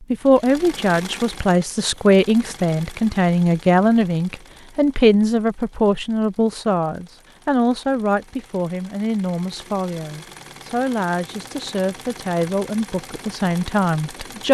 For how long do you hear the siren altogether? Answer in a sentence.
You can't hear the siren here.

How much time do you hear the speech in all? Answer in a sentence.
The speech can be heard for 14 seconds in total.